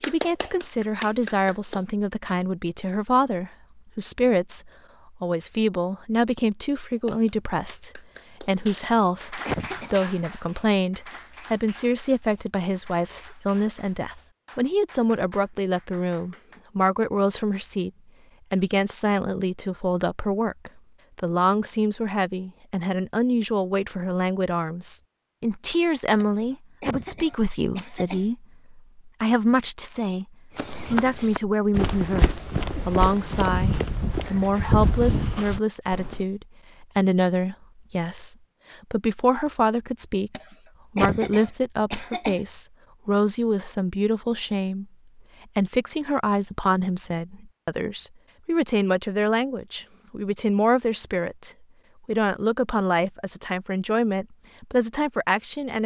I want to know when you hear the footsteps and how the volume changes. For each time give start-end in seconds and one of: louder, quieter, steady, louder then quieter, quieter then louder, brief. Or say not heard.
30.6-36.2 steady.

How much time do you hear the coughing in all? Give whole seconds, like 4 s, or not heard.
5 s.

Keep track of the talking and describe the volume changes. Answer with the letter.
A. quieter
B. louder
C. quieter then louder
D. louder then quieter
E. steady
E.